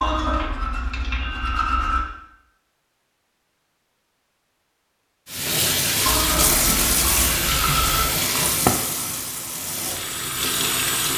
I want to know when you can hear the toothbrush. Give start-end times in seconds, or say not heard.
0.0-2.0, 6.0-8.1.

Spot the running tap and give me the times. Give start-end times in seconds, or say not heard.
5.2-11.1.